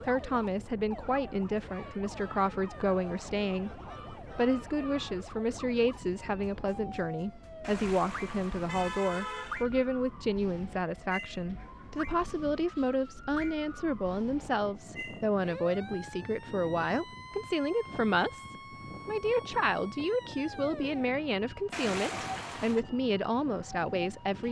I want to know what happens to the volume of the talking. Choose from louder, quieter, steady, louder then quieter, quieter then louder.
steady.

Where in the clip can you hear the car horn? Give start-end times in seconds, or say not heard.
7.6-9.7, 21.7-22.9.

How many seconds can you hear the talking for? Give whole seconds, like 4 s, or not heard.
24 s.